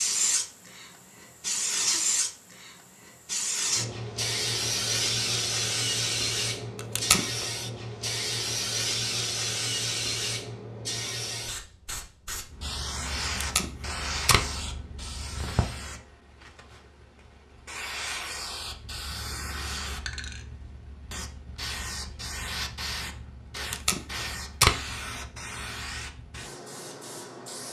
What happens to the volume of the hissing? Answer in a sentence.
The loudness of the hissing goes down.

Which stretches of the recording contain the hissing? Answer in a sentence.
The hissing can be heard from 0.0 to 27.6 s.